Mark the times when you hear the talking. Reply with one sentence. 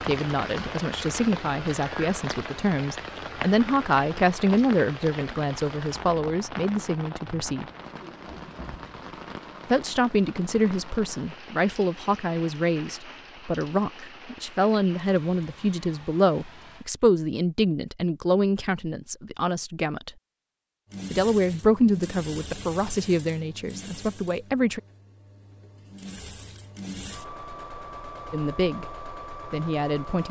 You can hear the talking from 0.1 to 7.7 s, from 9.7 to 20.1 s, from 21.1 to 24.8 s and from 28.3 to 30.2 s.